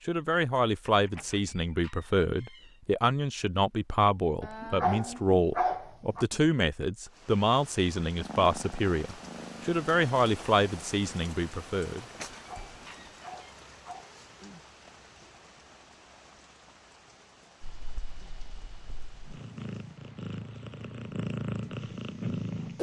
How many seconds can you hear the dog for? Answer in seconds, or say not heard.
4 s.